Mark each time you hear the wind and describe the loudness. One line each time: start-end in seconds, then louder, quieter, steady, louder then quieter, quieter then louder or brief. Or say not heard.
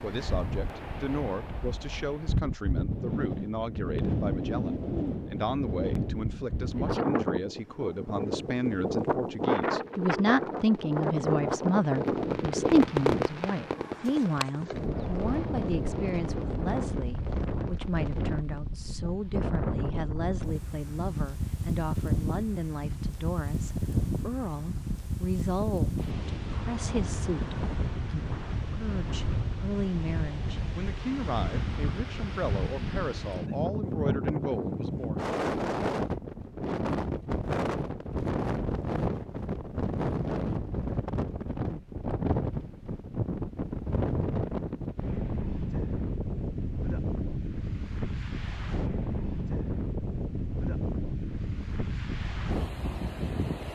0.0-53.7 steady.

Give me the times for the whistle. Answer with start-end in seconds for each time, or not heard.
not heard.